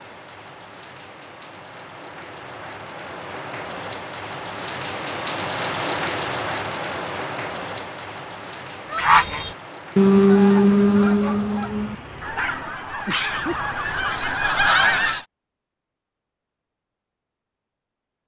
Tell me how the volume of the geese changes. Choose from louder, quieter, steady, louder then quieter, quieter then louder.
quieter then louder.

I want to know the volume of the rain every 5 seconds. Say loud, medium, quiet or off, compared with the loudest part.
medium, loud, medium, off.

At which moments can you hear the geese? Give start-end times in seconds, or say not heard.
8.9-15.2.